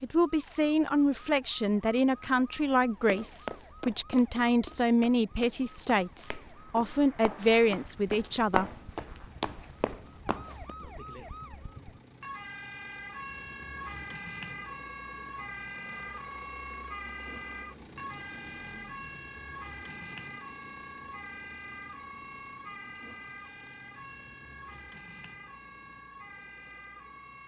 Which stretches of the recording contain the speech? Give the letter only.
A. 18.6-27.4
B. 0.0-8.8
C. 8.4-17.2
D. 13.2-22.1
B.